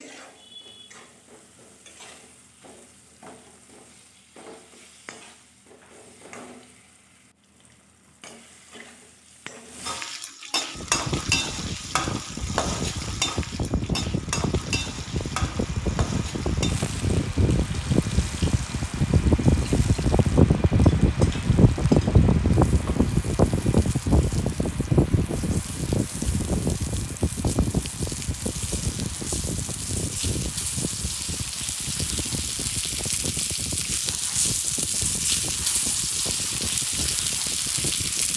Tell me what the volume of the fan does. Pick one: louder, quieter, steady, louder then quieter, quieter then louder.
louder then quieter.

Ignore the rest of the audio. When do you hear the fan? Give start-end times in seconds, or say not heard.
10.8-38.3.